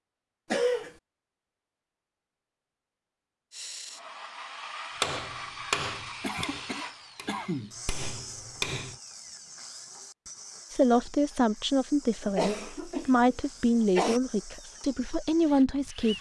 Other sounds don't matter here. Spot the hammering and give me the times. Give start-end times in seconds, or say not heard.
5.0-8.9.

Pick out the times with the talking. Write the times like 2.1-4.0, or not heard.
10.7-16.1.